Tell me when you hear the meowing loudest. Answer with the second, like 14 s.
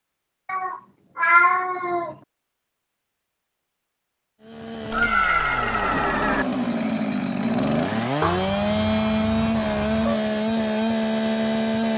1 s.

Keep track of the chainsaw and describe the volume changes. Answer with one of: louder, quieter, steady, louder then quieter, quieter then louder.
louder.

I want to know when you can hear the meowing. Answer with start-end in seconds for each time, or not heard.
0.5-2.1, 4.9-6.5, 8.2-10.2.